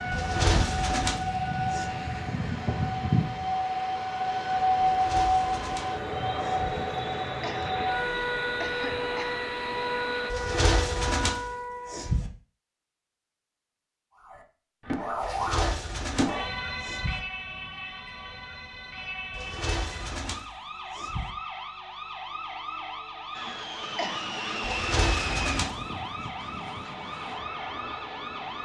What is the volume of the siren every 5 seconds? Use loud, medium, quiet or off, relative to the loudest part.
loud, loud, medium, medium, medium, medium.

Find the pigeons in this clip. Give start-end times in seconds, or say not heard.
0.1-1.9, 4.8-6.7, 10.3-12.3, 15.2-17.2, 19.3-21.4, 24.6-25.9.